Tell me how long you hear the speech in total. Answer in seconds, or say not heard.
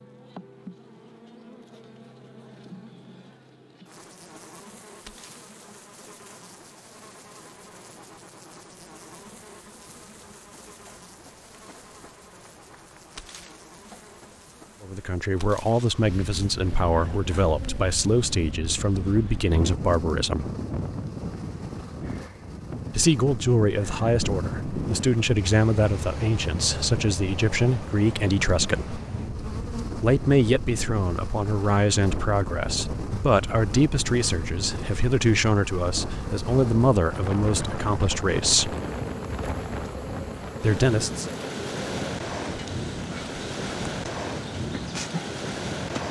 21 s.